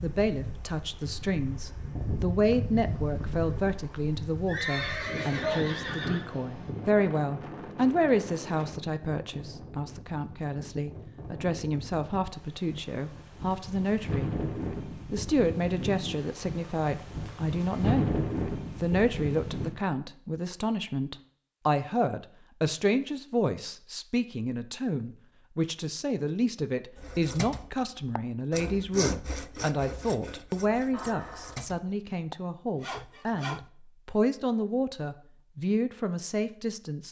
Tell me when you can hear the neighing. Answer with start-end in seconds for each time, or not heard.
4.5-6.2, 30.9-31.6.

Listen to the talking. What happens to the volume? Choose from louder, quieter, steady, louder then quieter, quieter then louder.
steady.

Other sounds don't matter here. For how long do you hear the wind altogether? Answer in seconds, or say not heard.
20 s.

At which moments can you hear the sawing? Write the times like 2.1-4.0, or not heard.
26.9-33.7.